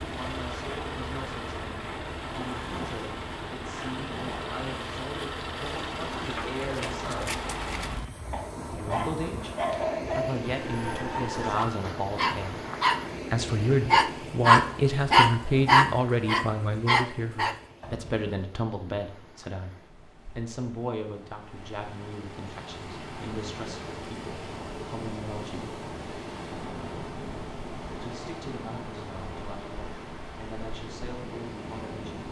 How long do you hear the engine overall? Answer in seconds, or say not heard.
8 s.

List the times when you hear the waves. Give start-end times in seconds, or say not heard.
0.0-32.2.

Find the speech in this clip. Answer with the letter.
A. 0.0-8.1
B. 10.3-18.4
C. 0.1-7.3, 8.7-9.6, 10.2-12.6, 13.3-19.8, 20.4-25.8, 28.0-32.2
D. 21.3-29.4
C.